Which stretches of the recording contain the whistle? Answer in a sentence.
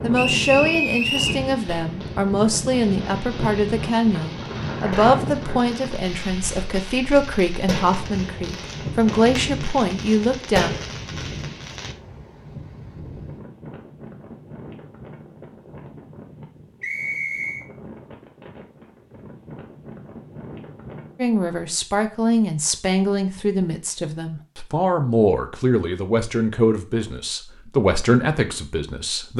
The whistle can be heard from 0.1 to 1.4 s and from 16.8 to 17.6 s.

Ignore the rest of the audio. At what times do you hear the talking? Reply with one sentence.
The talking can be heard from 0.0 to 10.7 s and from 21.1 to 29.3 s.